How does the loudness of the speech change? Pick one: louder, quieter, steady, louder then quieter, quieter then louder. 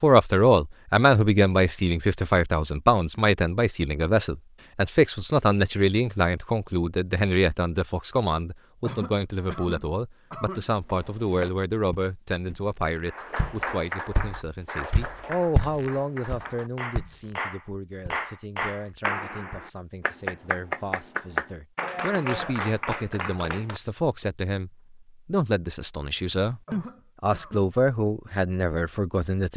quieter then louder.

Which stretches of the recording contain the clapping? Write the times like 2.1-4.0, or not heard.
13.1-23.8.